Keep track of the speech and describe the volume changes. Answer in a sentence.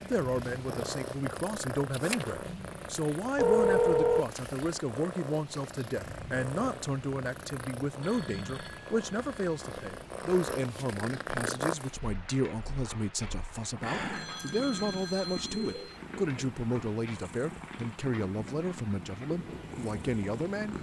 The volume of the speech stays about the same.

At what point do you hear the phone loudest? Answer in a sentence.
The volume of the phone peaks at 4 seconds.